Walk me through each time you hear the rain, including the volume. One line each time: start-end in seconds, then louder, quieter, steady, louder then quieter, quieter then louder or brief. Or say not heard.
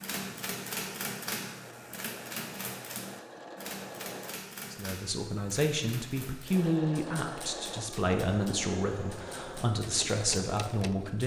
not heard.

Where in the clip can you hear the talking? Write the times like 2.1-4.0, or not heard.
4.7-11.2.